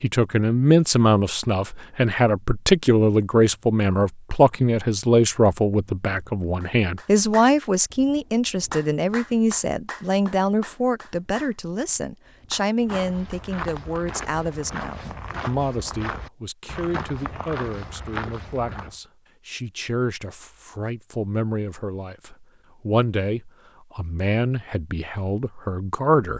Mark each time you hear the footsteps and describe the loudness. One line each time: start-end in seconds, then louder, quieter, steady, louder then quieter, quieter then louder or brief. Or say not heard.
12.8-19.0 steady.